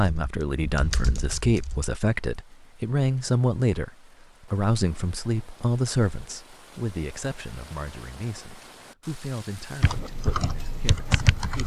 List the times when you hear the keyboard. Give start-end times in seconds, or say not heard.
0.0-1.8, 9.8-11.6.